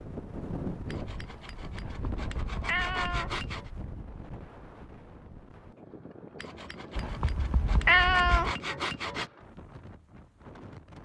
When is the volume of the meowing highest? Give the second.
8 s.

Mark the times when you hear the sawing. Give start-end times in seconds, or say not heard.
0.8-3.7, 6.3-9.3.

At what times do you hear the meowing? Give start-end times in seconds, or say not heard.
1.8-3.4, 7.0-8.6.